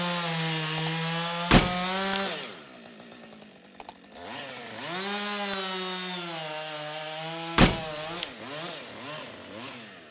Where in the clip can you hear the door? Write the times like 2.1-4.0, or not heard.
1.5-2.2, 7.5-8.2.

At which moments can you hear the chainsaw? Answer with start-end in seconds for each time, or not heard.
0.0-10.0.